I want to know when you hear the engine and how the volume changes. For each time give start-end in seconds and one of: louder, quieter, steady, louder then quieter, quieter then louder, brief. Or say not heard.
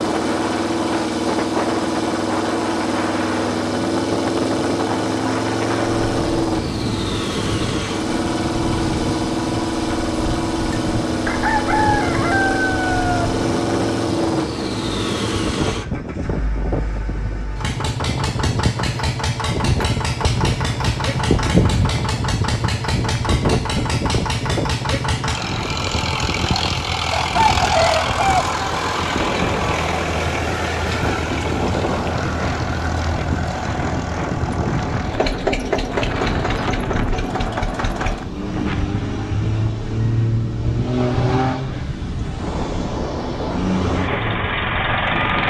0.0-45.4 steady.